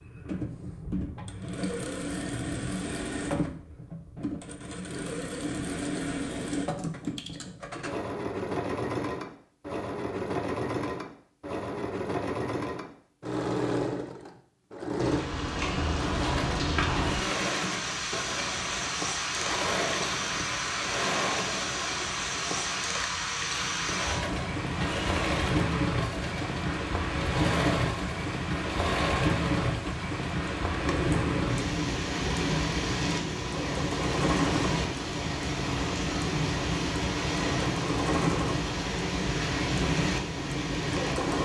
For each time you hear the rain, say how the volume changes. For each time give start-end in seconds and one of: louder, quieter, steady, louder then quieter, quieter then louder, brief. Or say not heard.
14.9-41.4 steady.